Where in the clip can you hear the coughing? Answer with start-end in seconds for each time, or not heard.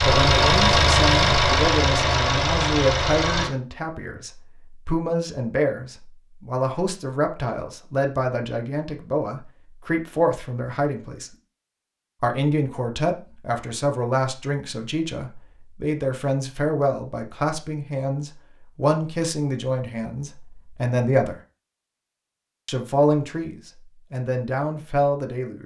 not heard.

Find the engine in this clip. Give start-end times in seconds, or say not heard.
0.0-3.5.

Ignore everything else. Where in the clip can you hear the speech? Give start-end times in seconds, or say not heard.
0.1-11.3, 12.2-21.4, 22.6-25.6.